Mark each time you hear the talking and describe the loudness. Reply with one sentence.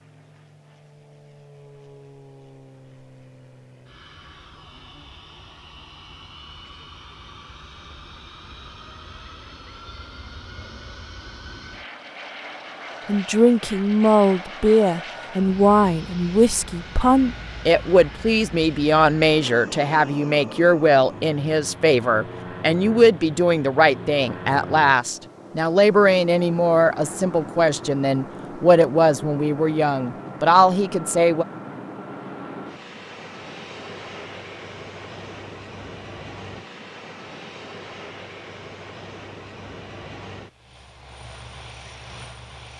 You can hear the talking from 13.1 to 31.4 s, at a steady volume.